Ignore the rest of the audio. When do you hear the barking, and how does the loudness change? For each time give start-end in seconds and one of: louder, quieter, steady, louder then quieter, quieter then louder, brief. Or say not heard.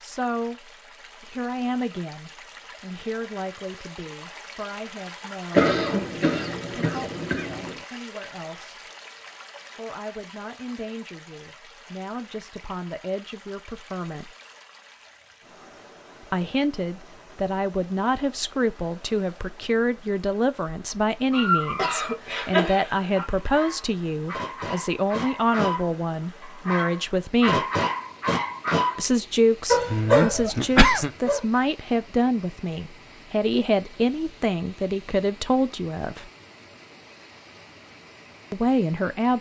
21.3-29.1 quieter then louder
29.6-31.4 brief.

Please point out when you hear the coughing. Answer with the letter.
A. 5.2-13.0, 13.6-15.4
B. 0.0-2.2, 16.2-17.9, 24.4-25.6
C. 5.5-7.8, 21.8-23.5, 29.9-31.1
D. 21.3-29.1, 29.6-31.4
C.